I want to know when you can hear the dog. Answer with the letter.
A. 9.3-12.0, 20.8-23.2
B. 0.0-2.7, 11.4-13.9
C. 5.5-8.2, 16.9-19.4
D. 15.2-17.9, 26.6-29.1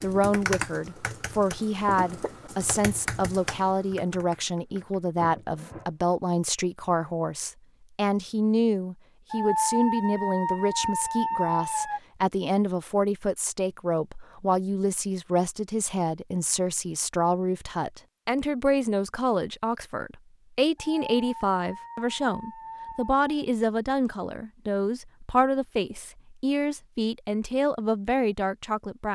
A.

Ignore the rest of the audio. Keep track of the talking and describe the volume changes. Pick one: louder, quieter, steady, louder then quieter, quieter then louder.
steady.